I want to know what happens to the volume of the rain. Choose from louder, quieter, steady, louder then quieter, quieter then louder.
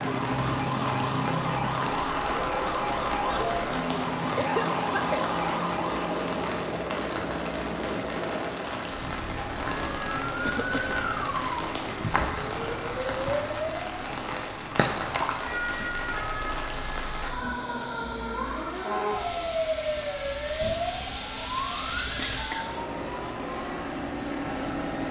steady.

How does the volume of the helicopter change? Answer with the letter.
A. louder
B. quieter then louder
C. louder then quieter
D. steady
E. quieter
B.